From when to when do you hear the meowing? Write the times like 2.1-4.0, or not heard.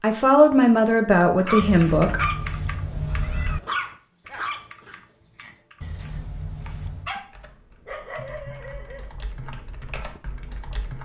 1.6-3.6, 5.8-7.2.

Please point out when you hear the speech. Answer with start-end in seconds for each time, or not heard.
0.0-2.2.